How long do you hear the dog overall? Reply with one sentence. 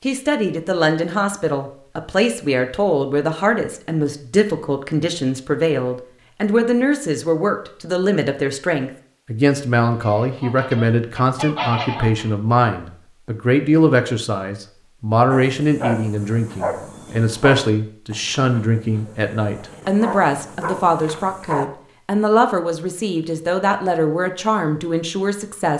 You can hear the dog for 6 seconds altogether.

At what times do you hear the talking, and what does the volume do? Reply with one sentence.
The talking can be heard from 0.0 to 25.7 s, at a steady volume.